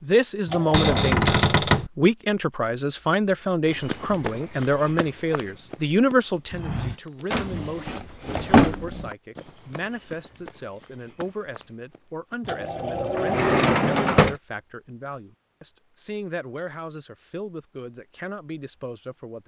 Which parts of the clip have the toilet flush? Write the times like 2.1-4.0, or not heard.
0.5-0.9, 12.4-14.3.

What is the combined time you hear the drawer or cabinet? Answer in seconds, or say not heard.
4 s.